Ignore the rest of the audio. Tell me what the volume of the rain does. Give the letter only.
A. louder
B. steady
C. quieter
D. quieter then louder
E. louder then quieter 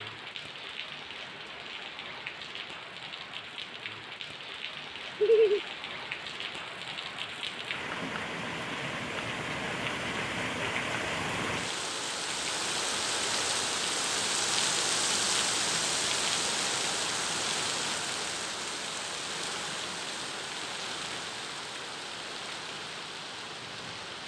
E.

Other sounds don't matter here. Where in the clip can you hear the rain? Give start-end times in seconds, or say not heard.
0.0-24.2.